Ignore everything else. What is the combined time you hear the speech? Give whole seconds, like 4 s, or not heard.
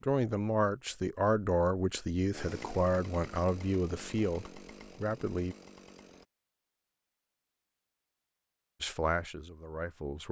7 s.